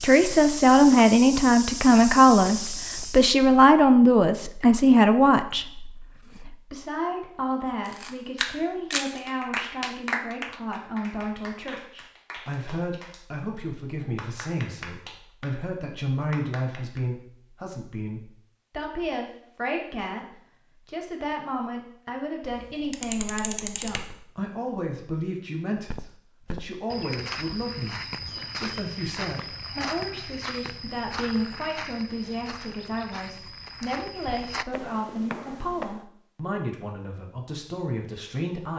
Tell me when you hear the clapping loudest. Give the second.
10 s.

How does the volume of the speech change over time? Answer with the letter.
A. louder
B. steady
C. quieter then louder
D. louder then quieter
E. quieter
E.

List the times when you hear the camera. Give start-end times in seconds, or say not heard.
7.8-9.2, 22.4-24.1.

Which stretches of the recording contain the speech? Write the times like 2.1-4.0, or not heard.
0.0-38.7.